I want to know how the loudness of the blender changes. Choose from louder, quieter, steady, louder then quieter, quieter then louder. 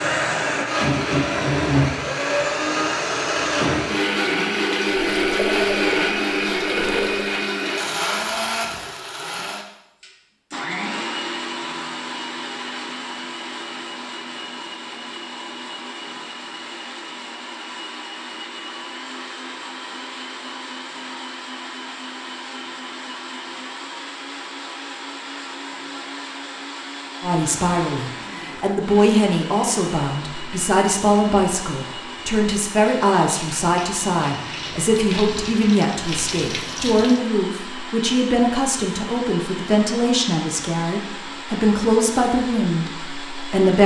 quieter.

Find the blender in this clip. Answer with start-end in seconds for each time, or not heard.
0.0-43.8.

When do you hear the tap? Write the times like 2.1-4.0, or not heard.
5.0-7.3, 32.8-37.2.